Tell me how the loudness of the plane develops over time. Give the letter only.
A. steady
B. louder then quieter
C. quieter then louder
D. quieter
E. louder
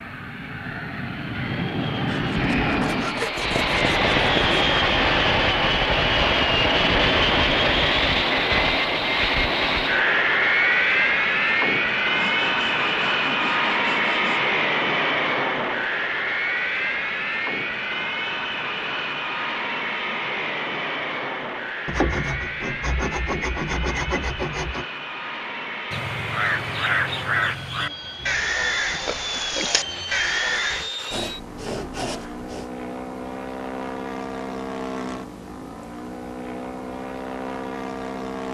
D.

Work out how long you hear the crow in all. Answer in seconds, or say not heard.
5 s.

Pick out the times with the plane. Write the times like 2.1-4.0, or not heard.
0.0-38.4.